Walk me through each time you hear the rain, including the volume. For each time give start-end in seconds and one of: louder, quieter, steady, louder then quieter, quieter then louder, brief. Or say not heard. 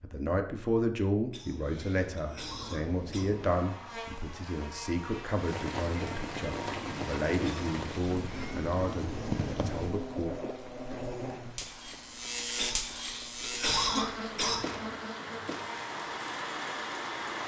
5.3-17.4 quieter then louder.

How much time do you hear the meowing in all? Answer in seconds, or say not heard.
5 s.